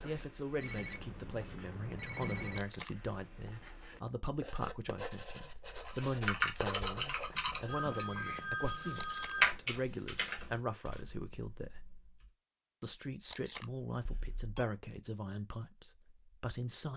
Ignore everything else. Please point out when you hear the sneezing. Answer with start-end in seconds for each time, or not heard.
not heard.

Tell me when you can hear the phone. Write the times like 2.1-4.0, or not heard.
0.6-2.6, 7.0-9.5, 14.1-14.7.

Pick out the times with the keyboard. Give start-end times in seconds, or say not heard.
5.8-12.3.